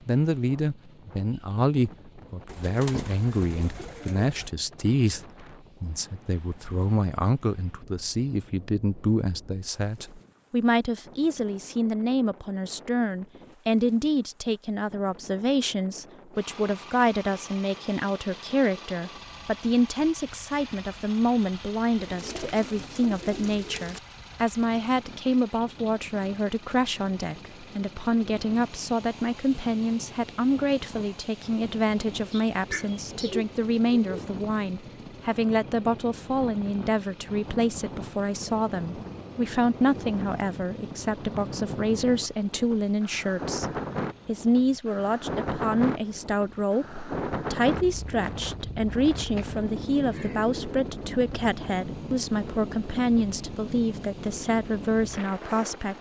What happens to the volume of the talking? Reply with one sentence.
The loudness of the talking stays about the same.